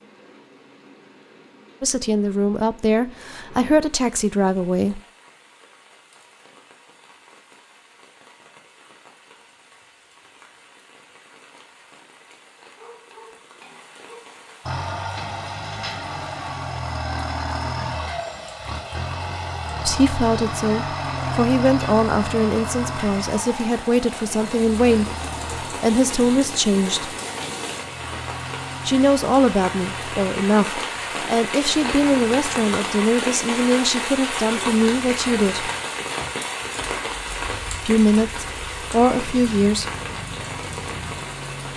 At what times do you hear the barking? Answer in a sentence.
You can hear the barking from 12.7 to 14.4 s.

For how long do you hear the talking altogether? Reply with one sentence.
You can hear the talking for 19 seconds altogether.